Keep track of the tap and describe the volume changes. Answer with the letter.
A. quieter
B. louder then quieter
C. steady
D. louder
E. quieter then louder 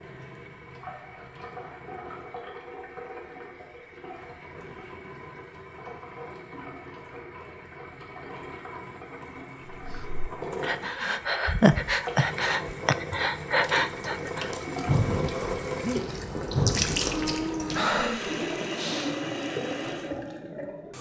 D.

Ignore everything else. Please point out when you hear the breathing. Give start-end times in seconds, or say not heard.
9.7-19.1.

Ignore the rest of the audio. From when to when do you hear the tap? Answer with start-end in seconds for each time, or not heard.
0.0-20.9.